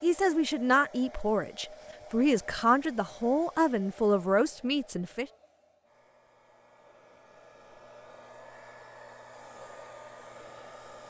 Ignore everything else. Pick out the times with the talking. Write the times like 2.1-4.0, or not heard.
0.0-5.2.